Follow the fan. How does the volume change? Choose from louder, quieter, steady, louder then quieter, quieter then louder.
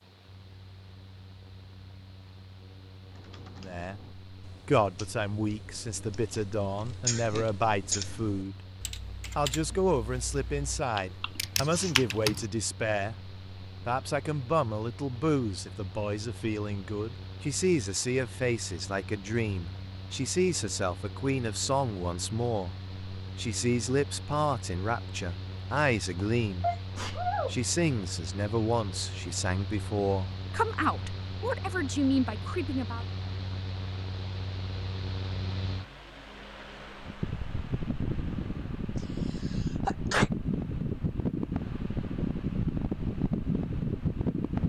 louder.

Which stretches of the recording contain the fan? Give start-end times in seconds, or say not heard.
0.0-44.6.